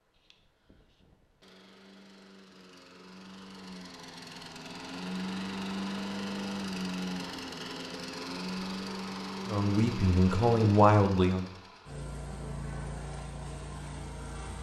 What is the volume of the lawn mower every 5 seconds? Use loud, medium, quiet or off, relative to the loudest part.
quiet, loud, medium.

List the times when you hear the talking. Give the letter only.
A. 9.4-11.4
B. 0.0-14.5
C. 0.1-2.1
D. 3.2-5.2
A.